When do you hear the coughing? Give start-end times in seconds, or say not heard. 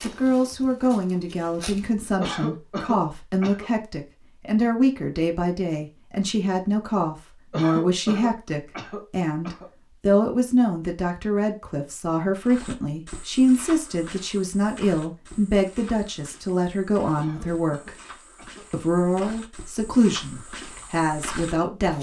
2.2-3.7, 7.5-9.7, 17.1-19.1.